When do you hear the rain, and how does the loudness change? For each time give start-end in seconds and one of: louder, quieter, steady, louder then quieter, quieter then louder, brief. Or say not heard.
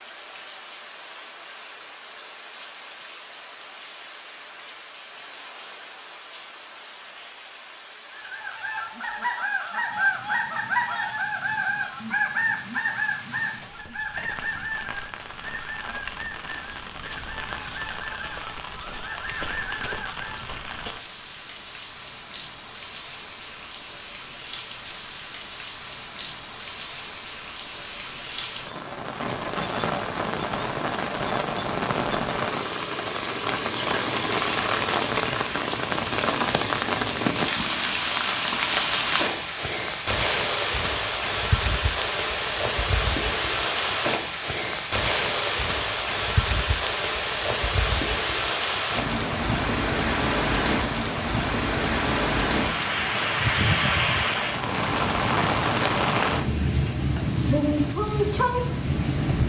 0.0-59.4 louder.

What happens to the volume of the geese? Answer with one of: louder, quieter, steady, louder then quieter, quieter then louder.
quieter.